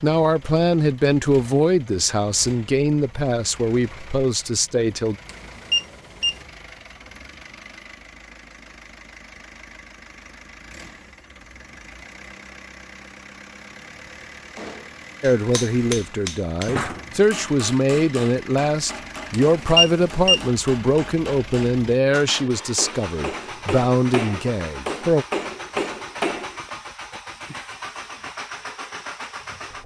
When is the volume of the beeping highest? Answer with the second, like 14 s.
20 s.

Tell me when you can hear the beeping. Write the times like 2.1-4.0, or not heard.
5.2-6.4, 19.3-20.4.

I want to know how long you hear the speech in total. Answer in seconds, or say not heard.
15 s.